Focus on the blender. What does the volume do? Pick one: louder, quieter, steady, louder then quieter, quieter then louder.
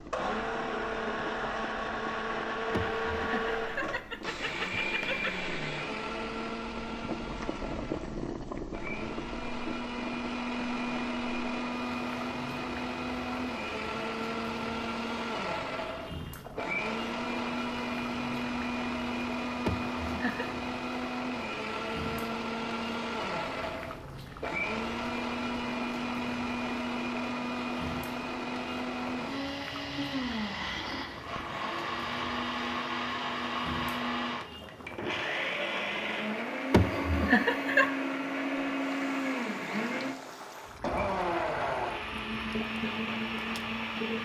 steady.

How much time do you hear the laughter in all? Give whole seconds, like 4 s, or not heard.
5 s.